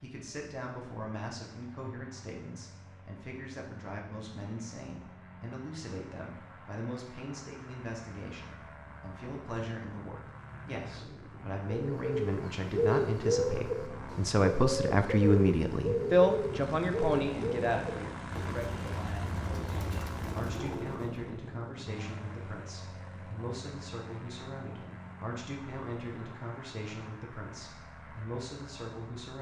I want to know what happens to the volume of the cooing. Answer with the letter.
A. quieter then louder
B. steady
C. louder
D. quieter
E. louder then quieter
D.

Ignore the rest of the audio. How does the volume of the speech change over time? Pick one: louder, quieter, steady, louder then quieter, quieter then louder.
louder then quieter.